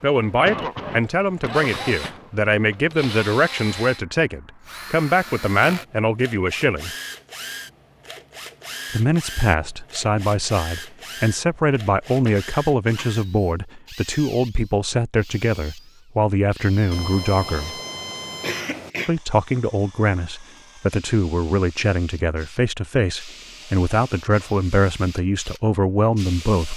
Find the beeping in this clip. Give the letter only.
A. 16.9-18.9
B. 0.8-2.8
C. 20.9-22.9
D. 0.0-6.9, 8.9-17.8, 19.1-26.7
A.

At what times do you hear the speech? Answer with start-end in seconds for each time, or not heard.
0.0-6.9, 8.9-17.8, 19.1-26.7.